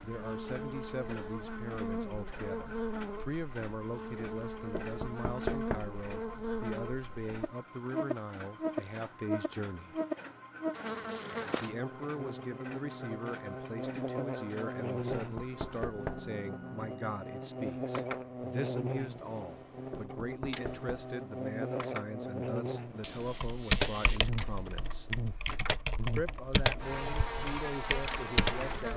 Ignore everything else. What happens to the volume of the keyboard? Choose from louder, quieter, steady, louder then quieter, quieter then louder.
quieter then louder.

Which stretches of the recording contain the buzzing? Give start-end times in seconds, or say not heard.
0.0-28.9.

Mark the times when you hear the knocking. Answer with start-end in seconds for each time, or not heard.
4.7-6.0, 15.2-16.3, 19.9-20.9.